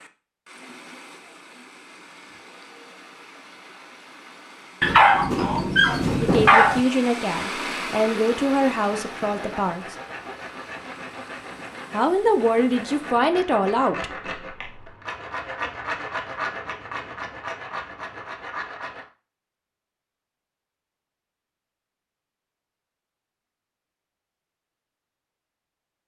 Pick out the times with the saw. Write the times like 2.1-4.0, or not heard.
8.3-19.1.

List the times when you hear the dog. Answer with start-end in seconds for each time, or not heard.
4.8-6.8.